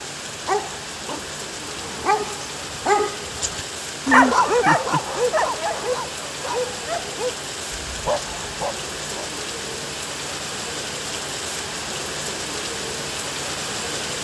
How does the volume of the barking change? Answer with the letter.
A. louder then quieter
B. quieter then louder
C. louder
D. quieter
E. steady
A.